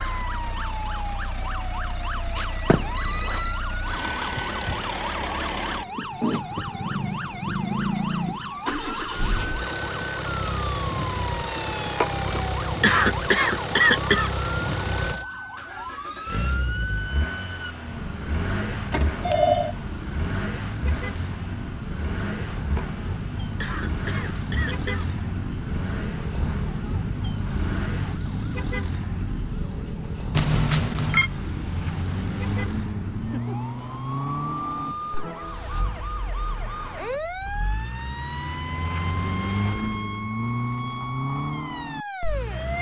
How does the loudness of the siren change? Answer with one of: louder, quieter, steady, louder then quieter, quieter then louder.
steady.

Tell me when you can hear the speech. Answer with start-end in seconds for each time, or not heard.
not heard.